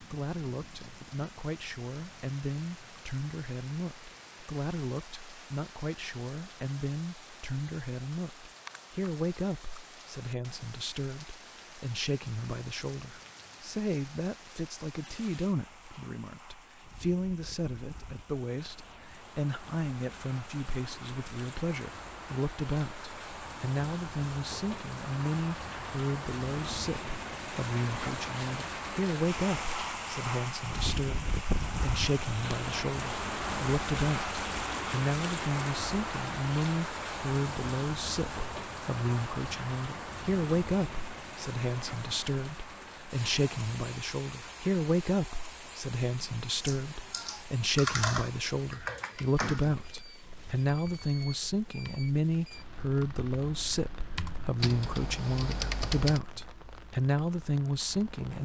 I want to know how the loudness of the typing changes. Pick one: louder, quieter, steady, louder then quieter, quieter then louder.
quieter then louder.